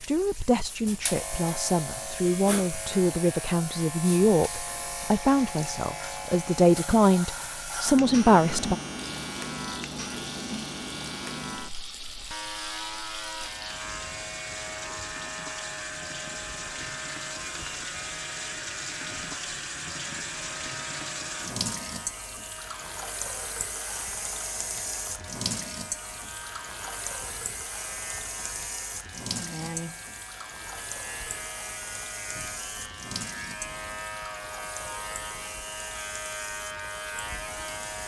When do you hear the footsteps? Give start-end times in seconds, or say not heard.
not heard.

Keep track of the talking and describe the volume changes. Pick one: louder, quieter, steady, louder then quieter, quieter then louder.
louder.